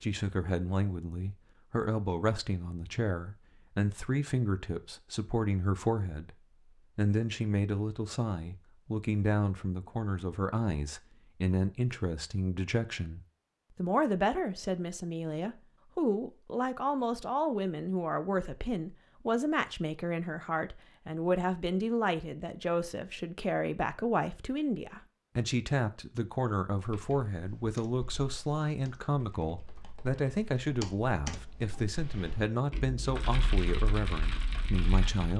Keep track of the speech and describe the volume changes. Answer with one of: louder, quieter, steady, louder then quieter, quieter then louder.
steady.